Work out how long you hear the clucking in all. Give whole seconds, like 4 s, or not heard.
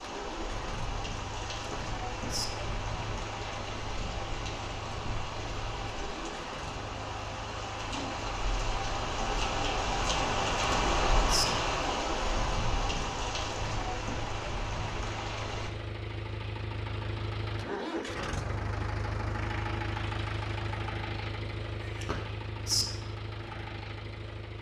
not heard.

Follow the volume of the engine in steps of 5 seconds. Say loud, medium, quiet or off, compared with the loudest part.
medium, medium, medium, loud, loud.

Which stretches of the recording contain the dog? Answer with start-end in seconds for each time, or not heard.
not heard.